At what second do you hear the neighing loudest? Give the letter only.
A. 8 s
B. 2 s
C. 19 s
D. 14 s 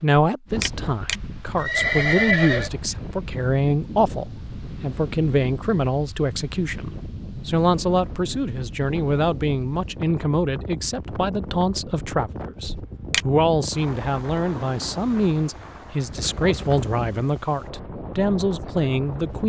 B.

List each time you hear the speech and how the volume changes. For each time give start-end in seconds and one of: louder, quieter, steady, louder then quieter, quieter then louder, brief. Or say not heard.
0.0-19.4 steady.